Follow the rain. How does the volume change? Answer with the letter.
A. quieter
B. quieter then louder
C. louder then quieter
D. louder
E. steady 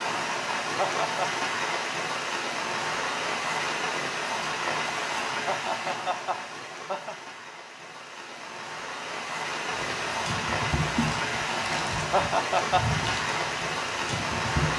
B.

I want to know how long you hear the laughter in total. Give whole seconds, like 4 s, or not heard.
3 s.